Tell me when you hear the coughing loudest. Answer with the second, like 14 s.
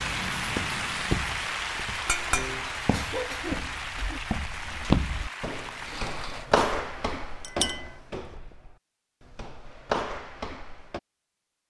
3 s.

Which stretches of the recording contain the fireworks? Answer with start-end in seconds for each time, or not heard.
not heard.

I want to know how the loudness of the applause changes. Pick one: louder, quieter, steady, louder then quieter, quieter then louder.
quieter.